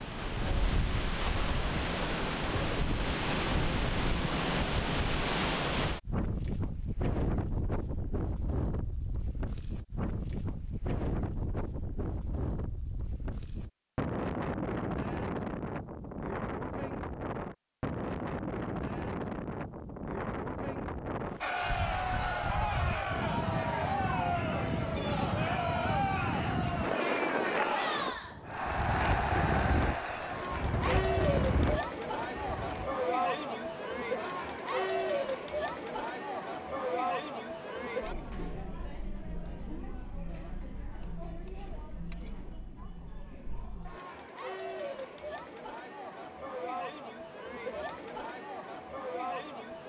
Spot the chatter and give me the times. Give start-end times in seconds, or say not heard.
21.4-49.8.